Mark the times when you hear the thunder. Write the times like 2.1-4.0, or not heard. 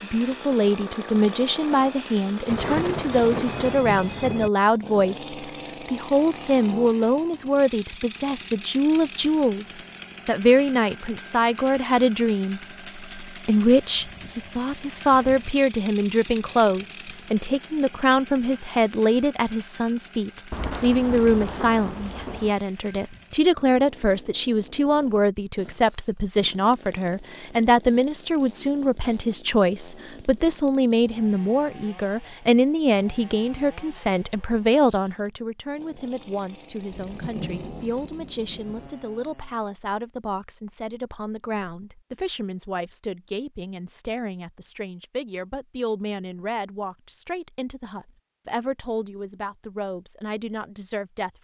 2.5-4.5, 20.5-22.6, 36.9-38.9.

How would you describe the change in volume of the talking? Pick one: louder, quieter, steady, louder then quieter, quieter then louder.
quieter.